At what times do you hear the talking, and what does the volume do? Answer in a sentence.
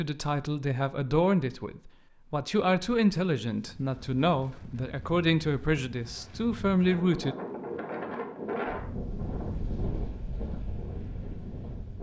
You can hear the talking from 0.0 to 7.3 s, at a steady volume.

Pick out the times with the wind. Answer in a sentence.
You can hear the wind from 3.5 to 11.9 s.